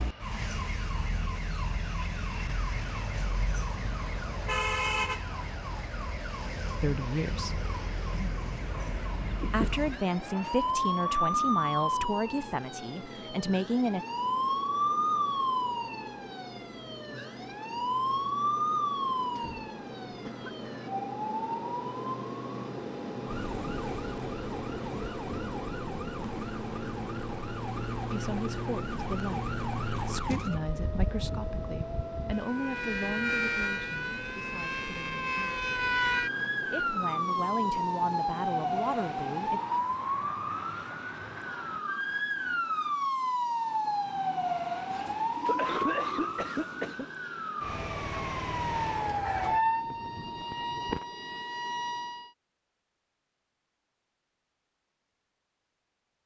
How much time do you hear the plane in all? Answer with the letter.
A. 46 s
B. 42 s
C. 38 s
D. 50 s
B.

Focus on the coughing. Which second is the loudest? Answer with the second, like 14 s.
46 s.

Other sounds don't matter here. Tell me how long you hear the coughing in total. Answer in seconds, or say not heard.
4 s.